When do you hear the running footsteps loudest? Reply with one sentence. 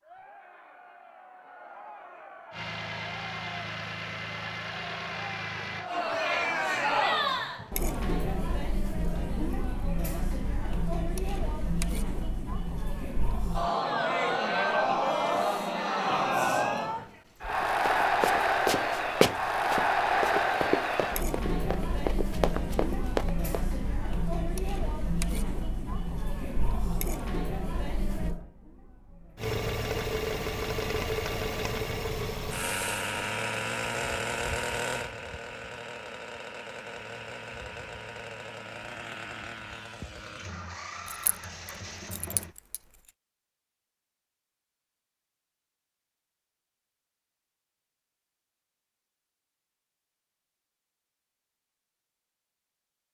The loudest moment of the running footsteps is at 19 seconds.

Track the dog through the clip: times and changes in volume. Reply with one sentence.
You can't hear the dog here.